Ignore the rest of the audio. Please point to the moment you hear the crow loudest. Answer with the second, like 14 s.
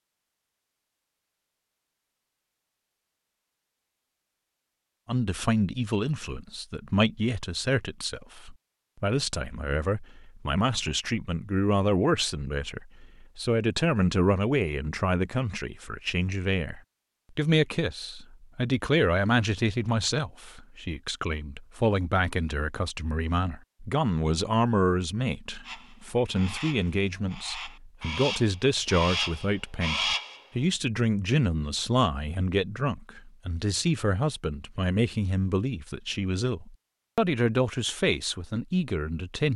30 s.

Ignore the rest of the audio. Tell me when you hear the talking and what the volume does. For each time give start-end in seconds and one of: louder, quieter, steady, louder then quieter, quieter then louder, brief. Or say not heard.
5.0-39.5 steady.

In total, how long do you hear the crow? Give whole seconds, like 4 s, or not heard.
5 s.